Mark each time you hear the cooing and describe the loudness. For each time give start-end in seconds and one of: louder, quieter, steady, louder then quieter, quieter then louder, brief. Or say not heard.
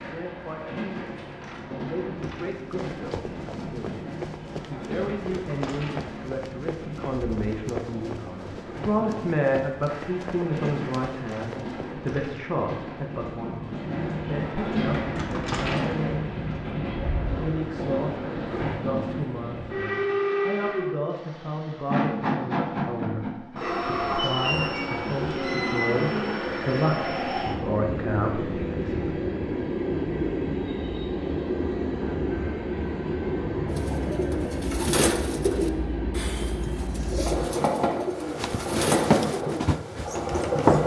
33.7-40.7 quieter.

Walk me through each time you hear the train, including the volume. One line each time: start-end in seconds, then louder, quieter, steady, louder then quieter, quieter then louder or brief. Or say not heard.
0.0-40.8 louder.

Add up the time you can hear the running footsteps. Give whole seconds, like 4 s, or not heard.
12 s.